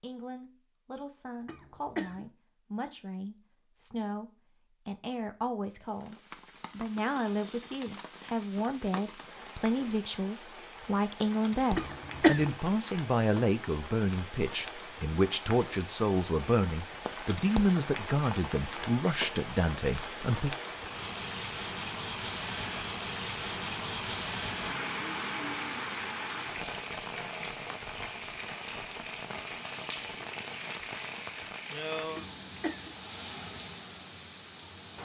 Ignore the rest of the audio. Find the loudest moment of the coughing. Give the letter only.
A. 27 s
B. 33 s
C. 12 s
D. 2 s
C.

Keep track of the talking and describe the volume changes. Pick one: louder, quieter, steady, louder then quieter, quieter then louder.
louder.